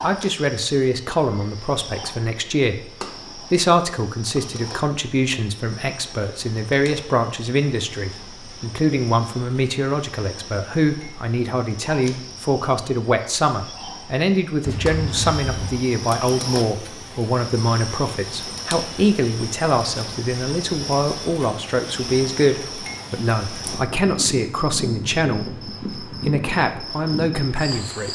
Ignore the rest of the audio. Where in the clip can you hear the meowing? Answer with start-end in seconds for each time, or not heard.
14.7-15.9.